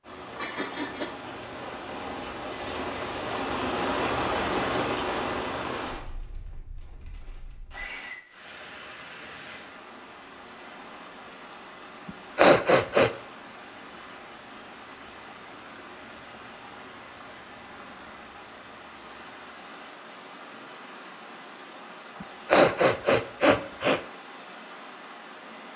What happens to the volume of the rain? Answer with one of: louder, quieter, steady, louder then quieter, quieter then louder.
quieter.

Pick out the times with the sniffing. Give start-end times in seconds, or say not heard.
0.3-1.1, 12.1-13.1, 22.2-24.0.